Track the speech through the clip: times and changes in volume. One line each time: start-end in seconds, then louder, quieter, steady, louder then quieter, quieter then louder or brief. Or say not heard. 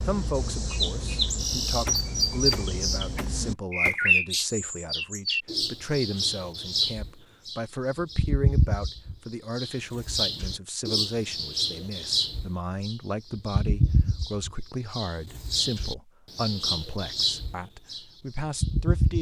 0.1-19.1 steady.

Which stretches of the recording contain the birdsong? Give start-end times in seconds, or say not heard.
0.0-19.1.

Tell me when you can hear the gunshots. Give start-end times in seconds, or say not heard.
1.9-4.0.